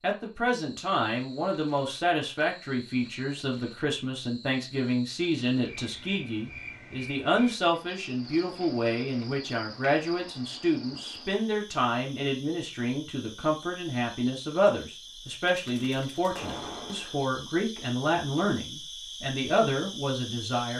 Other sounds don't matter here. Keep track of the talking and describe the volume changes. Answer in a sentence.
The volume of the talking stays about the same.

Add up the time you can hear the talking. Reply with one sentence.
The talking can be heard for 21 seconds in total.